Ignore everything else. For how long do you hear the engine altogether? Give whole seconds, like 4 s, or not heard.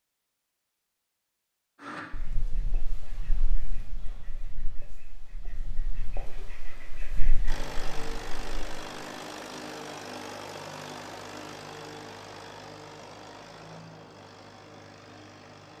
8 s.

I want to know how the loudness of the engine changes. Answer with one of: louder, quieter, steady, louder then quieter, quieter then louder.
quieter.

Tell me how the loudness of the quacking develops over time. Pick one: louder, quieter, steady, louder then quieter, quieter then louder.
quieter then louder.